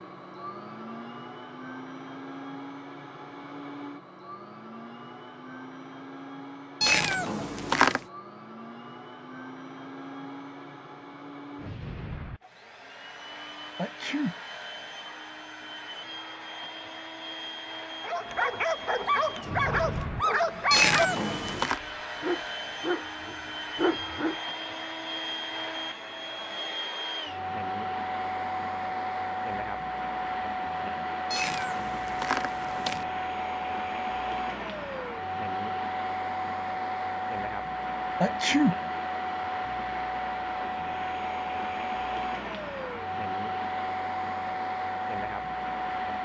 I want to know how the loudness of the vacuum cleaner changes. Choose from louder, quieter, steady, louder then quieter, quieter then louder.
louder.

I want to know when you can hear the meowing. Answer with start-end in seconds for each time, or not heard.
6.8-8.0, 20.7-21.8, 31.3-33.0.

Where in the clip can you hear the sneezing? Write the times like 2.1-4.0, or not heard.
13.8-14.3, 38.2-38.8.